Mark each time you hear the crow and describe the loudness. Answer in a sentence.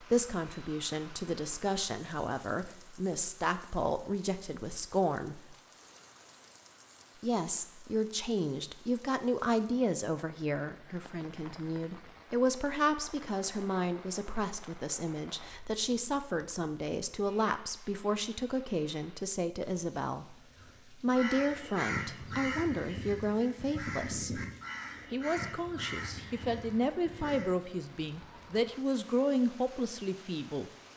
The crow can be heard from 20.6 to 27.6 s, getting quieter.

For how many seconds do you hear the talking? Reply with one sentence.
The talking can be heard for 28 seconds in total.